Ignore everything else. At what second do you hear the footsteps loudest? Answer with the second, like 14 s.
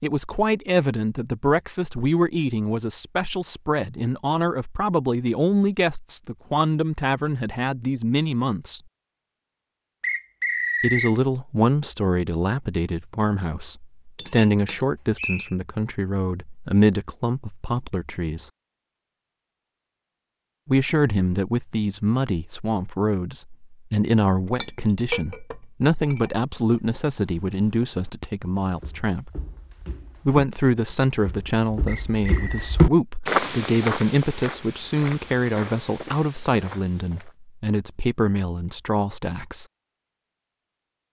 33 s.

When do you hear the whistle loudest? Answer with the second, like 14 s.
11 s.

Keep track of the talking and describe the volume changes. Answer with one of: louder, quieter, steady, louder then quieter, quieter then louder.
steady.